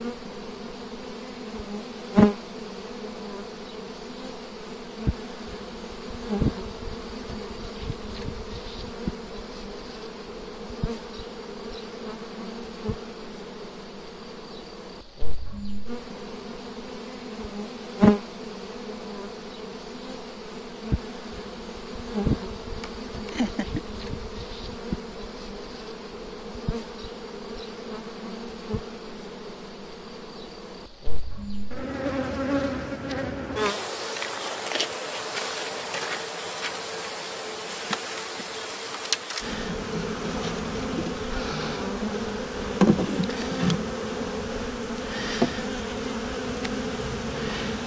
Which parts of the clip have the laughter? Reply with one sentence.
The laughter can be heard from 22.8 to 23.8 s.